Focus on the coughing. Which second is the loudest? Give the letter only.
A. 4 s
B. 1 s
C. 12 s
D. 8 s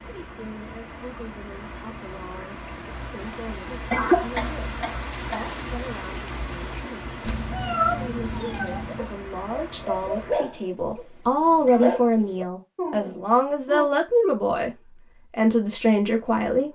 A.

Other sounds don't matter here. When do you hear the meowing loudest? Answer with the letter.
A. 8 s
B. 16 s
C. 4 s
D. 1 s
A.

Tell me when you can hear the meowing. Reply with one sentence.
The meowing can be heard from 7.2 to 9.1 s.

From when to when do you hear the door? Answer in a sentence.
The door can't be heard in this clip.